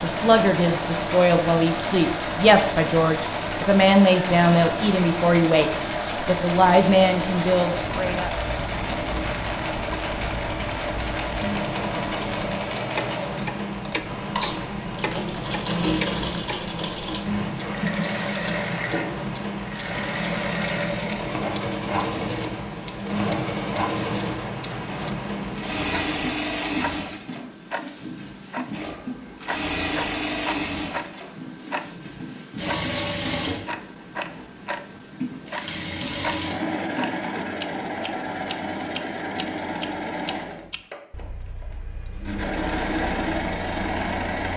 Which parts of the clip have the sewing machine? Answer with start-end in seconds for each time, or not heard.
0.0-44.5.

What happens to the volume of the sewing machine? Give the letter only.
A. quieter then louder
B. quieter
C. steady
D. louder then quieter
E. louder
C.